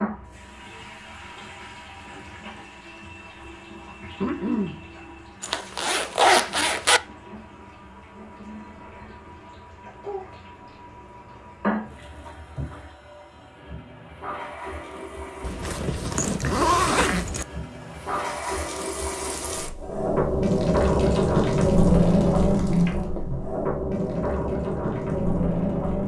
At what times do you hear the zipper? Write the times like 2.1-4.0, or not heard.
5.4-7.0, 15.4-17.4.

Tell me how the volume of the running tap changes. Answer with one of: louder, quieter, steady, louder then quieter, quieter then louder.
louder.